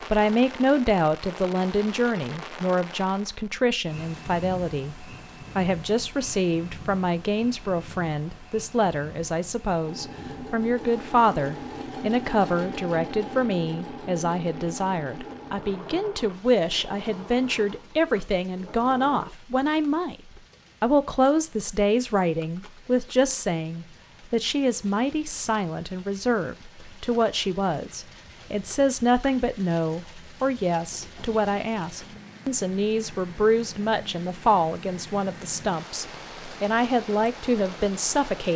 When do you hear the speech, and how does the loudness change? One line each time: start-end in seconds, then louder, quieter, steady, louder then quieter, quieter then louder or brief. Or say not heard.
0.1-20.1 steady
20.8-38.5 steady.